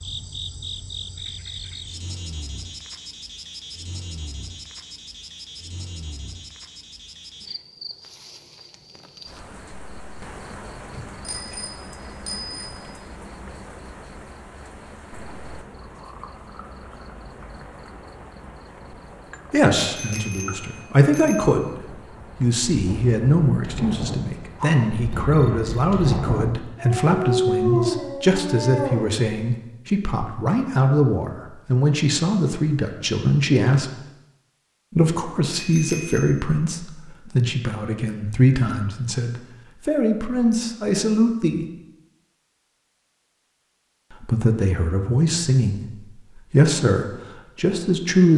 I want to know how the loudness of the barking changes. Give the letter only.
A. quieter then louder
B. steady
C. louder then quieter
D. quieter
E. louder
E.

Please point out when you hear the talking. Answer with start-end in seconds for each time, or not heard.
19.5-21.7, 22.4-33.9, 34.9-41.6, 44.1-48.3.